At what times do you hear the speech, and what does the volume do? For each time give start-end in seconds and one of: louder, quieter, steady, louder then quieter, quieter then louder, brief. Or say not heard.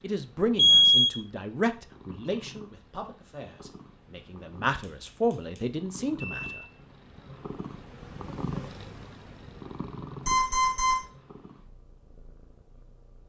0.0-6.7 quieter then louder.